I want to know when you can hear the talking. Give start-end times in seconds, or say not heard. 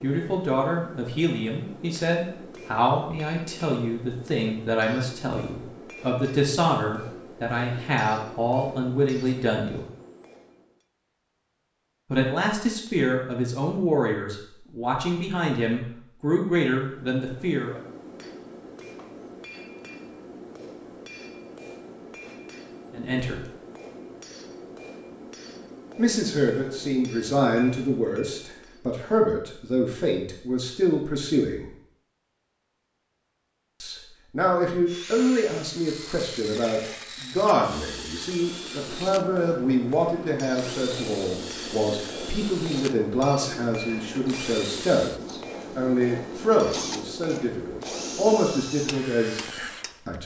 0.0-9.8, 12.1-17.8, 22.9-23.4, 25.9-31.7, 33.8-50.2.